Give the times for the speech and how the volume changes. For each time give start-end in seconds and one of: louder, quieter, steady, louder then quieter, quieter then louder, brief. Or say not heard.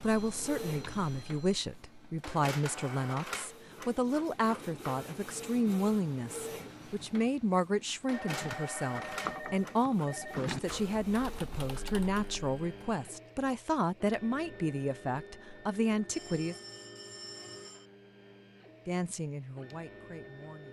0.0-16.6 steady
18.9-20.6 brief.